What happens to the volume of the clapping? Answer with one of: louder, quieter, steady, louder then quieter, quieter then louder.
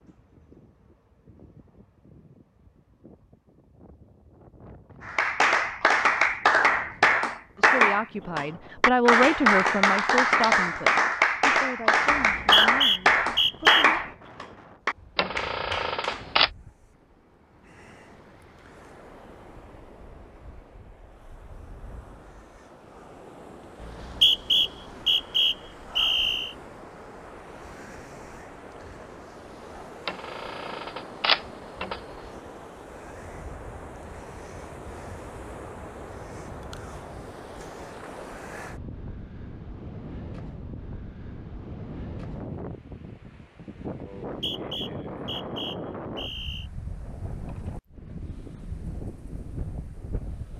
quieter.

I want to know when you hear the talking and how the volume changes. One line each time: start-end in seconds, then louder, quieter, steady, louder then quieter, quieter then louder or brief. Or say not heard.
7.5-14.0 quieter.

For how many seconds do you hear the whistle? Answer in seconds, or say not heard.
7 s.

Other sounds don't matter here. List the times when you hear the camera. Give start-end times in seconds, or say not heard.
15.2-16.5, 30.1-32.0.